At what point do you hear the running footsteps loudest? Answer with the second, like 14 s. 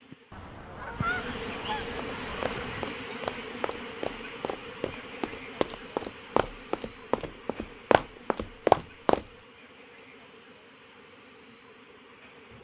9 s.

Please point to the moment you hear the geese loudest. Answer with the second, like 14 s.
1 s.